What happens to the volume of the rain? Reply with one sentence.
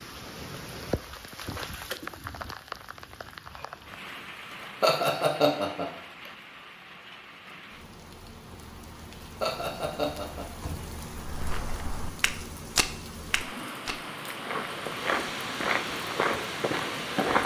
The volume of the rain goes down, then up.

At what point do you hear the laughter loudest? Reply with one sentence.
The volume of the laughter peaks at 5 seconds.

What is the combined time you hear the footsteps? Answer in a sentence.
You can hear the footsteps for 6 seconds altogether.